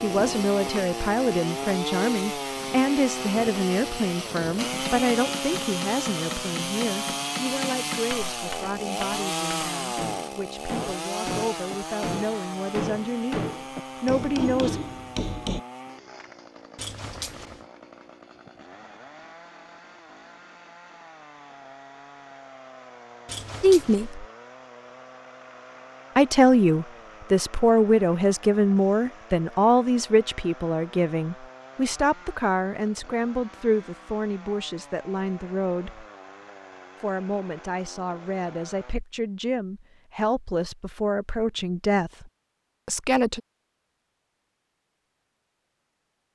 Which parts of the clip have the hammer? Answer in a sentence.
The hammer can be heard from 4.2 to 15.6 s.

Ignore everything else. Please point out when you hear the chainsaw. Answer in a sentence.
The chainsaw can be heard from 0.0 to 39.0 s.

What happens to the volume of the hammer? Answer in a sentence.
The volume of the hammer goes up.